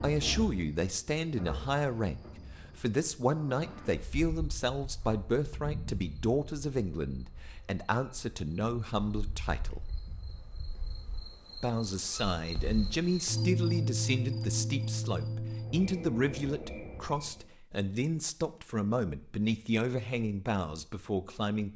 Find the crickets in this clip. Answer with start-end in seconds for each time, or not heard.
0.0-17.5.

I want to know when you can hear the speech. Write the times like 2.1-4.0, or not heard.
0.0-9.8, 11.6-21.7.